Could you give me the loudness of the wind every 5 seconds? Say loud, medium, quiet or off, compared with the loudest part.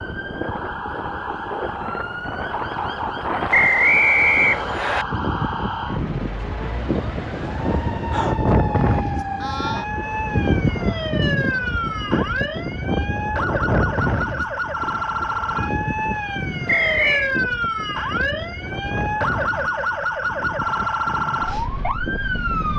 medium, loud, loud, medium, medium.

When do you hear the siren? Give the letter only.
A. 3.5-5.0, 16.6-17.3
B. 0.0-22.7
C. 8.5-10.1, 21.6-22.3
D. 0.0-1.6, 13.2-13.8
B.